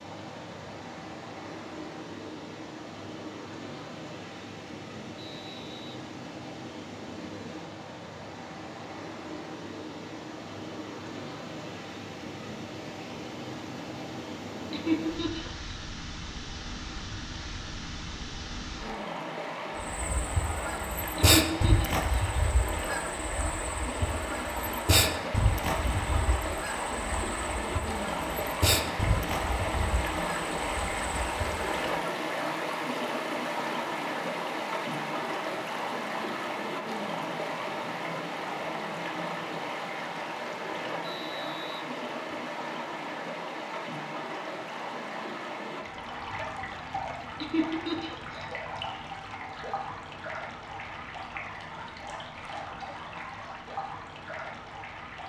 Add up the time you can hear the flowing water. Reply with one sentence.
You can hear the flowing water for 55 seconds altogether.